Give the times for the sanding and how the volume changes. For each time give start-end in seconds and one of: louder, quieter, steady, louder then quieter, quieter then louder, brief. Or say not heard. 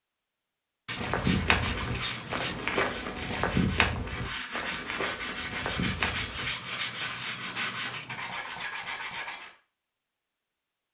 1.1-9.5 louder.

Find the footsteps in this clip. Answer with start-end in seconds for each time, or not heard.
0.9-6.5.